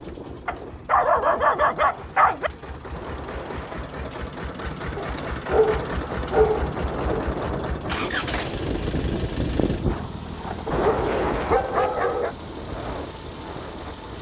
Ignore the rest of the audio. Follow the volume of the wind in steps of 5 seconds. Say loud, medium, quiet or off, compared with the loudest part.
medium, loud, loud.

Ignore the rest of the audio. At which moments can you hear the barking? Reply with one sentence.
You can hear the barking from 0.5 to 2.5 s, from 5.0 to 7.2 s and from 10.7 to 12.3 s.